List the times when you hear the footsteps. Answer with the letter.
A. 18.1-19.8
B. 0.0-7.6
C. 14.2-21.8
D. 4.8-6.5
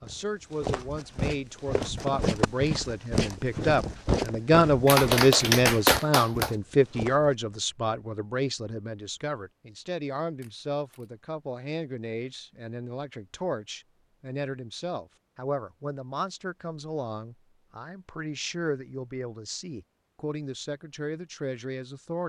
B.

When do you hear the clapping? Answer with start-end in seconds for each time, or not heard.
4.8-6.5.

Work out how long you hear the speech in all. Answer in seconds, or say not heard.
22 s.